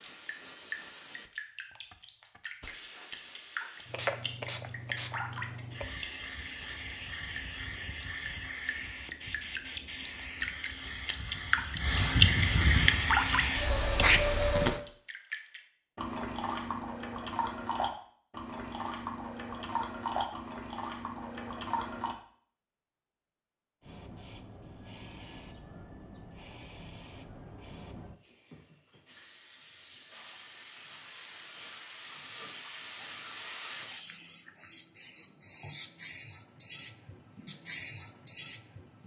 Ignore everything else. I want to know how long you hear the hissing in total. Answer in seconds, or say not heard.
30 s.